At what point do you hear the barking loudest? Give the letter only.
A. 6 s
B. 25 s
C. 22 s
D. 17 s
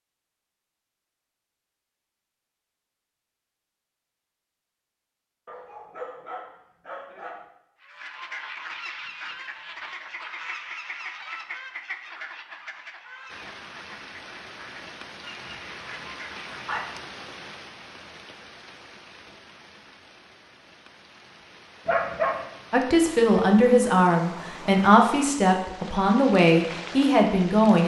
C.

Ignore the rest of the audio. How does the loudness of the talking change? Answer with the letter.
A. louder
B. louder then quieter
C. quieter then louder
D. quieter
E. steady
E.